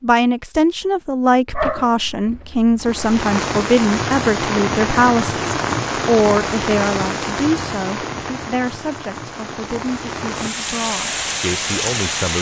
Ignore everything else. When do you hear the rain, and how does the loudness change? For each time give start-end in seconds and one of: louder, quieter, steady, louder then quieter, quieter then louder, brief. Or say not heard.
2.8-12.3 quieter then louder.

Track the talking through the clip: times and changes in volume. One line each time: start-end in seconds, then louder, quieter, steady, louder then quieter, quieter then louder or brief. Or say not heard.
0.0-12.3 quieter.